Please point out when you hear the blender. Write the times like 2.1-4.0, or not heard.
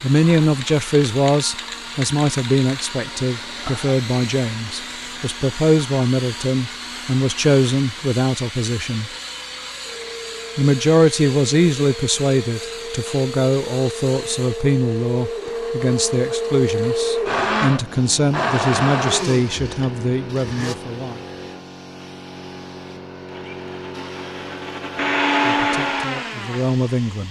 0.0-20.8, 23.2-27.2.